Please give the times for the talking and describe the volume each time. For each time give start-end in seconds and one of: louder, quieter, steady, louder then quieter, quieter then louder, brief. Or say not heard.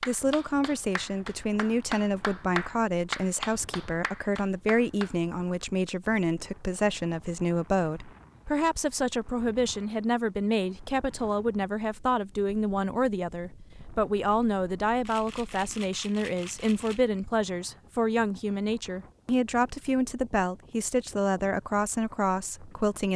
0.1-23.1 steady.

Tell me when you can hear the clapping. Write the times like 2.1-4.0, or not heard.
0.0-5.2.